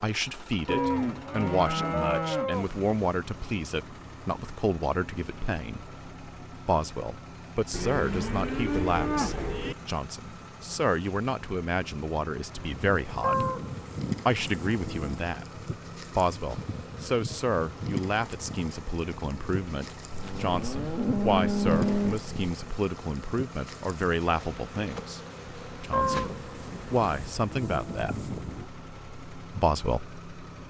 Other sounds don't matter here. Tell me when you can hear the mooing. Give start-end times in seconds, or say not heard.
0.7-2.6, 7.7-9.8, 13.2-15.2, 20.1-22.4, 25.9-28.6.